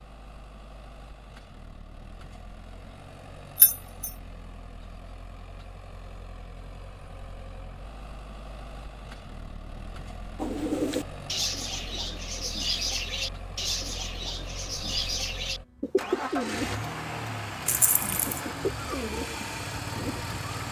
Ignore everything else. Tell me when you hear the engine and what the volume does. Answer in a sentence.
The engine can be heard from 0.0 to 20.6 s, getting louder.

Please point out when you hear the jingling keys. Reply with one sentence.
The jingling keys can be heard from 3.5 to 4.1 s and from 17.6 to 18.4 s.